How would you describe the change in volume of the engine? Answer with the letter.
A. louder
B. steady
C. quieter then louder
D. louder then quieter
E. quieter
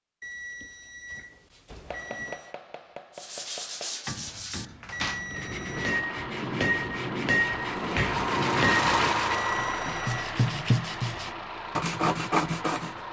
D.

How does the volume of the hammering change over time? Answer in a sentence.
The volume of the hammering goes up.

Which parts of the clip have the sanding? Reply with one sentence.
The sanding can be heard from 3.1 to 13.0 s.